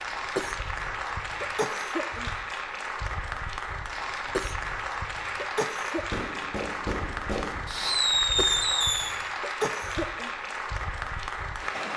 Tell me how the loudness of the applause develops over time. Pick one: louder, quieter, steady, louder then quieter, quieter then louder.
steady.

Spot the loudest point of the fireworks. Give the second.
8 s.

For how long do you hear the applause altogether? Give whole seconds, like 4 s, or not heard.
12 s.